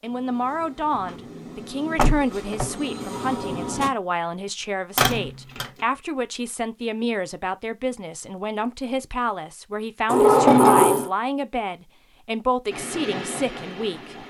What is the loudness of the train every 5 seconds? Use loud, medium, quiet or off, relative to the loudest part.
loud, off, loud.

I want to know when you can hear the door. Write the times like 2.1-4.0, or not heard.
1.9-2.7, 5.0-5.7, 10.1-11.1.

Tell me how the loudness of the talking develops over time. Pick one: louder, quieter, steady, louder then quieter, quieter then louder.
steady.